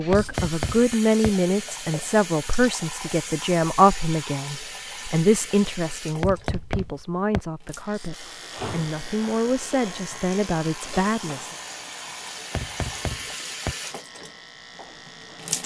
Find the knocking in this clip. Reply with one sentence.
You can hear the knocking from 0.1 to 1.3 s, from 6.2 to 7.4 s and from 12.6 to 13.8 s.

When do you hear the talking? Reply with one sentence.
The talking can be heard from 0.0 to 11.5 s.